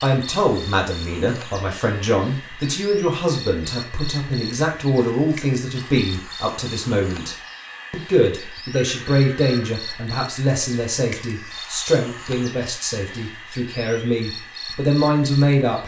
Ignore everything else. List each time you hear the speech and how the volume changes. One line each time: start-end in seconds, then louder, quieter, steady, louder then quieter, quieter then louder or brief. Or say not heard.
0.0-15.8 steady.